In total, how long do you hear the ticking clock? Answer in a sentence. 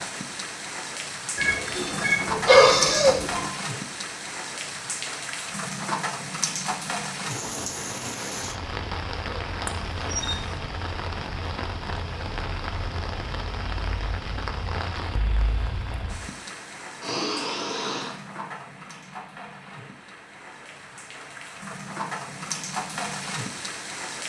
The ticking clock can't be heard in this clip.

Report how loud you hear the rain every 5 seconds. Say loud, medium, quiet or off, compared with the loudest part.
loud, loud, loud, medium, loud.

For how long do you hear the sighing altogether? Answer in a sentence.
The sighing can be heard for 4 seconds in total.